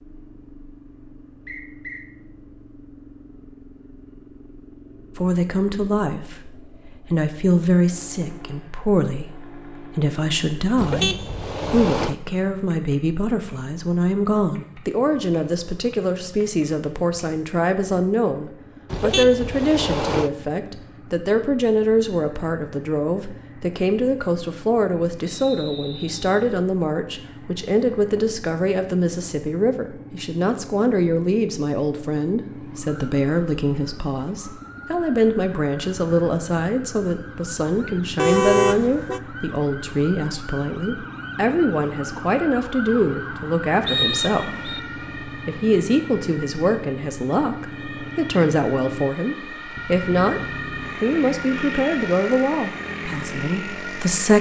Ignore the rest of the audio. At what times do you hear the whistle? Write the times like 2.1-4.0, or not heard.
1.4-2.0, 25.2-26.2, 43.9-44.8.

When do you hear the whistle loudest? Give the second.
44 s.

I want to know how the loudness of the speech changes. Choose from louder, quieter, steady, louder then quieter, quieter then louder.
steady.